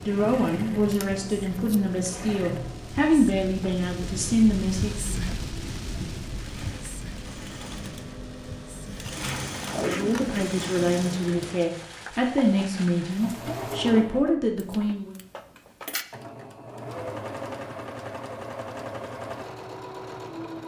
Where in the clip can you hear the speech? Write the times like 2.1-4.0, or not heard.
0.1-5.2, 9.8-15.2.